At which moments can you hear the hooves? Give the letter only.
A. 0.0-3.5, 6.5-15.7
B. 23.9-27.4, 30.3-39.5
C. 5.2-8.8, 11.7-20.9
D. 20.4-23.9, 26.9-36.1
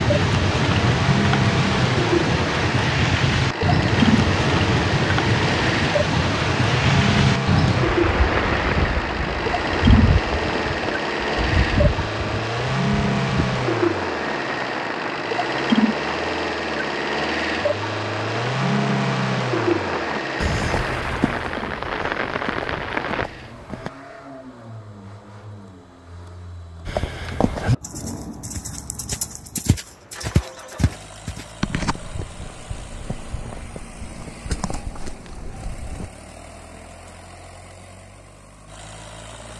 D.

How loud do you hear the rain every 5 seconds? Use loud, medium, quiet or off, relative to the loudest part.
loud, loud, medium, medium, medium, off, off, off.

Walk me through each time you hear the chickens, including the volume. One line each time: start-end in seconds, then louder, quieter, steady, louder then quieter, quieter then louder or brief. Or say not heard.
not heard.